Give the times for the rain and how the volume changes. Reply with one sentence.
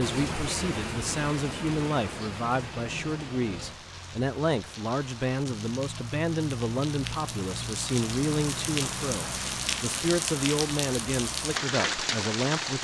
The rain can be heard from 0.0 to 12.7 s, getting quieter then louder.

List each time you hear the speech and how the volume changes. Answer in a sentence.
You can hear the speech from 0.0 to 12.7 s, at a steady volume.